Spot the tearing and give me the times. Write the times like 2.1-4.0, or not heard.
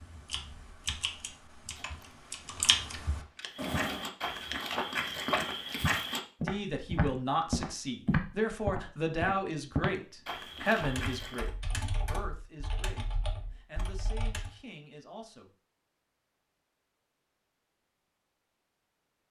1.8-2.5.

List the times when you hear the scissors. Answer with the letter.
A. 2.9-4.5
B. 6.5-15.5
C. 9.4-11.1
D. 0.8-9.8
A.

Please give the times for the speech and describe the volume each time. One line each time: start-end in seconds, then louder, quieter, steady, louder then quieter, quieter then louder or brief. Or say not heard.
6.5-15.5 quieter.